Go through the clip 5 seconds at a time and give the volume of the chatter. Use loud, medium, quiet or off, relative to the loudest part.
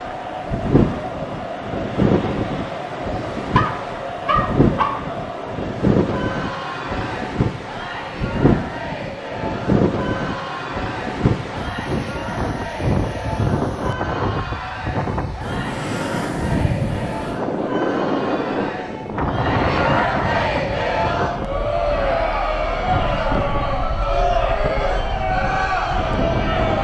medium, medium, medium, medium, loud, loud.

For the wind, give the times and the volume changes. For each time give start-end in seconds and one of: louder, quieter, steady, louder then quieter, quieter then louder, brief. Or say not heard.
0.0-26.7 quieter.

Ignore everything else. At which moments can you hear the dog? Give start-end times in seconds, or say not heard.
3.5-5.0.